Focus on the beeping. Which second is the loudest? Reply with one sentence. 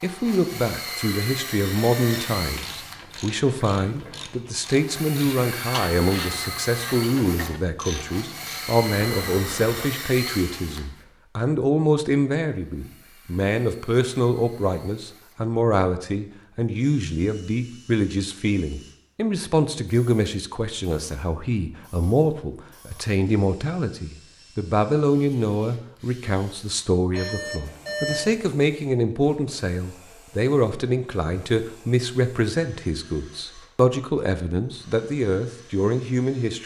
The loudest moment of the beeping is at 28 seconds.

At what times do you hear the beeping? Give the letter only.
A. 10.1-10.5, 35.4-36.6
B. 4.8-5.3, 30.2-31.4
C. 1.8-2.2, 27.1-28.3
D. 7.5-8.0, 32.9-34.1
C.